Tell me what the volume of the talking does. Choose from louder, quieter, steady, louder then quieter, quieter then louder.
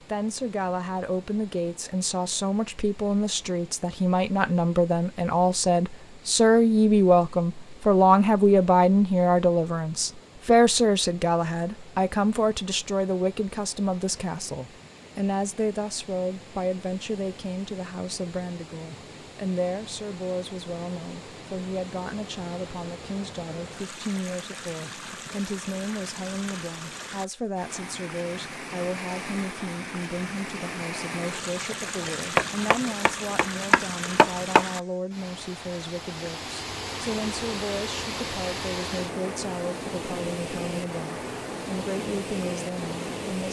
quieter.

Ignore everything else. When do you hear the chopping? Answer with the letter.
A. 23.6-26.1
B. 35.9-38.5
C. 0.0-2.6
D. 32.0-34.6
D.